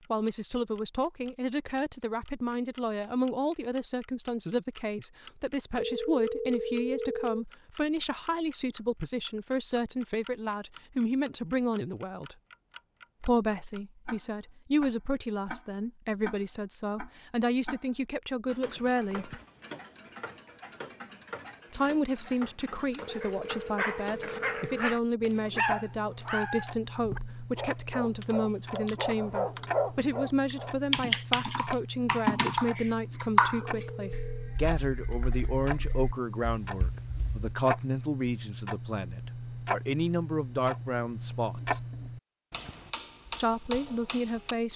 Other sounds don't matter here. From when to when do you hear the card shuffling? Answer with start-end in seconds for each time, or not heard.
not heard.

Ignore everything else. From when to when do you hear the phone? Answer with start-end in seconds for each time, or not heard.
5.8-7.5, 23.1-24.8, 33.6-34.5.